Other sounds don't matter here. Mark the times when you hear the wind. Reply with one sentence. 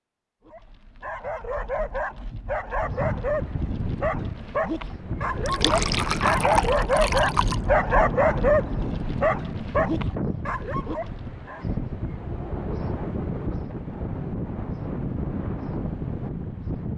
You can hear the wind from 2.7 to 16.9 s.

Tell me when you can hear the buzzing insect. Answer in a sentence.
The buzzing insect can't be heard in this clip.